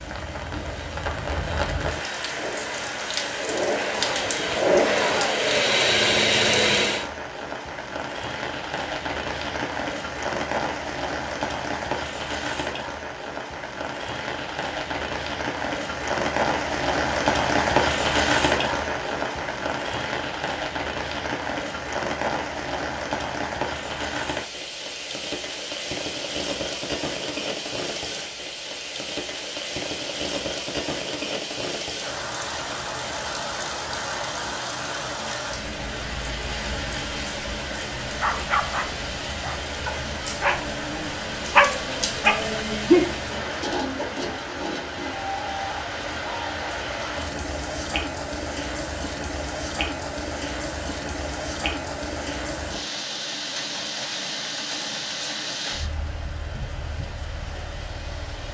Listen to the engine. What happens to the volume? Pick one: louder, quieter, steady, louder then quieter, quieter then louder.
louder.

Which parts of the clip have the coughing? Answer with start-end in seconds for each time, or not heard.
not heard.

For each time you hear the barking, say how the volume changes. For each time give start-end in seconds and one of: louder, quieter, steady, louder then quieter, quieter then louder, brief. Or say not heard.
38.2-43.1 louder.